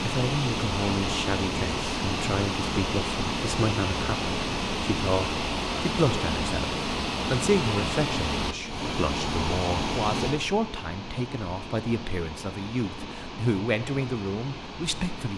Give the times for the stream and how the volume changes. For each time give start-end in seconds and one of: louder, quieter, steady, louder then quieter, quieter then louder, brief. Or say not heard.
0.0-15.3 quieter.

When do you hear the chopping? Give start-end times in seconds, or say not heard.
not heard.